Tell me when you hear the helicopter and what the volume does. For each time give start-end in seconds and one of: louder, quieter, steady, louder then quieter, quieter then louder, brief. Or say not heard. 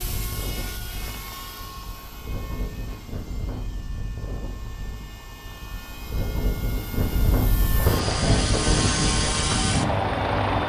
0.0-10.6 quieter then louder.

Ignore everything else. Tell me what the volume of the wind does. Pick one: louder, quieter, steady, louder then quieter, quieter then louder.
louder.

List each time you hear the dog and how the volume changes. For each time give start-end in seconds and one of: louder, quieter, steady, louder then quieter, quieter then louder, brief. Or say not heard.
not heard.